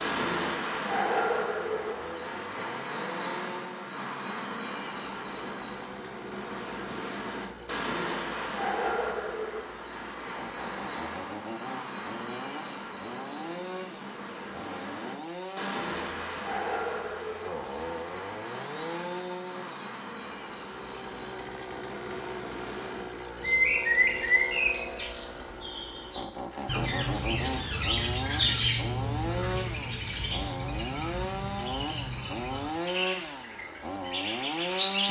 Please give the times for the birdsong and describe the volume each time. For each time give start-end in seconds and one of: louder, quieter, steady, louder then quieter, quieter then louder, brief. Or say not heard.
0.0-35.0 quieter.